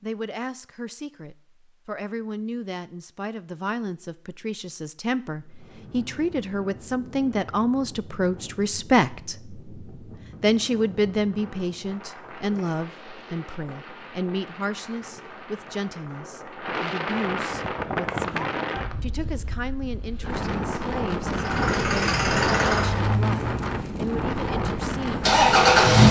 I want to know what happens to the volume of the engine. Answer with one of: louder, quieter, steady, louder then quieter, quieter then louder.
quieter then louder.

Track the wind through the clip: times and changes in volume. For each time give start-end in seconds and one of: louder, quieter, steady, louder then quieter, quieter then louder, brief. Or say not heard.
5.4-26.0 louder.